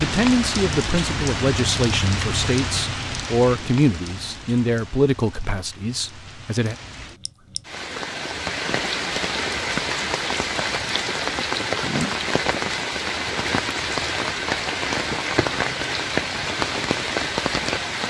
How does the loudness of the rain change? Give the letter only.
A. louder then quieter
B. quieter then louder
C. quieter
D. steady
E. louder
B.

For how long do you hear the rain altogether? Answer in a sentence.
The rain can be heard for 18 seconds in total.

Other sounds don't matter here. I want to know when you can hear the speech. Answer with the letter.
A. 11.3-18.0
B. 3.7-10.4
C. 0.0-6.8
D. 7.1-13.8
C.